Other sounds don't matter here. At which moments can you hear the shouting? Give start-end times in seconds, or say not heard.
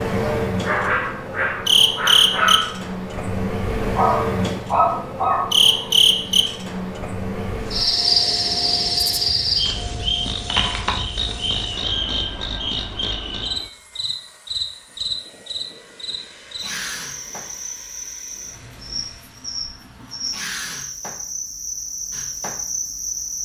not heard.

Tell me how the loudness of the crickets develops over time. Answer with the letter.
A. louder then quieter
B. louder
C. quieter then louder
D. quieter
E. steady
D.